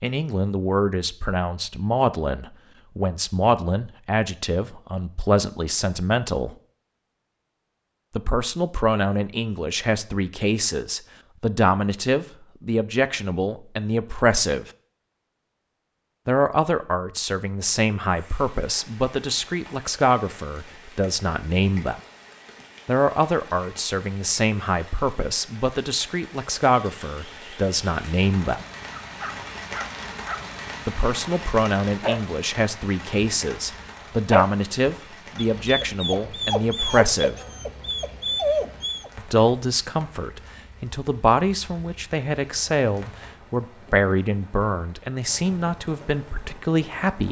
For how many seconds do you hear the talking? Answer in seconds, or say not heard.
39 s.